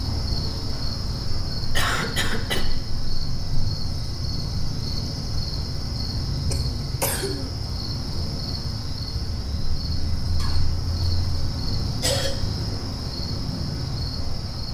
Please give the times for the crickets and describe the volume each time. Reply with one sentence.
The crickets can be heard from 0.0 to 14.6 s, at a steady volume.